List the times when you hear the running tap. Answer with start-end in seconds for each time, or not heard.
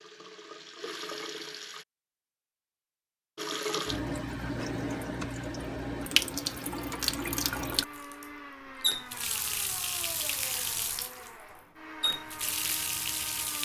0.0-1.9, 3.4-13.6.